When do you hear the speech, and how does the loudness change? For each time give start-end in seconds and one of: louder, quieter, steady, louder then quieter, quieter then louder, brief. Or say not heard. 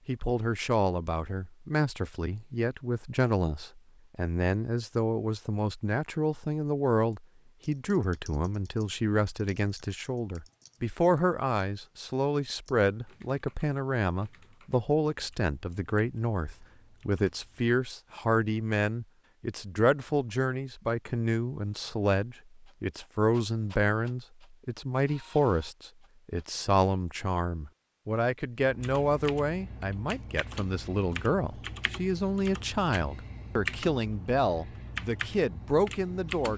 0.1-36.5 steady.